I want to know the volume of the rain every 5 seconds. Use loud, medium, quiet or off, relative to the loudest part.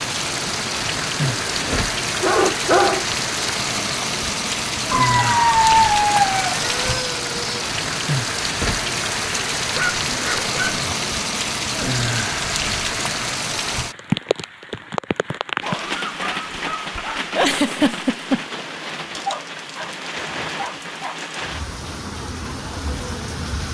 loud, loud, loud, medium, medium.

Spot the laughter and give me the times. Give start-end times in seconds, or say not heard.
17.4-18.4.